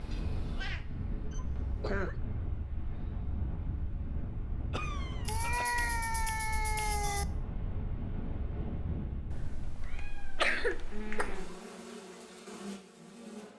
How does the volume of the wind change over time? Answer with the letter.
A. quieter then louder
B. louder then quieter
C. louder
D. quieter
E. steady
E.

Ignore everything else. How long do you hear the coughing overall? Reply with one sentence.
The coughing can be heard for 3 seconds in total.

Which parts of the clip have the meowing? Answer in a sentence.
You can hear the meowing from 0.1 to 0.8 s, from 5.2 to 7.2 s and from 9.3 to 11.4 s.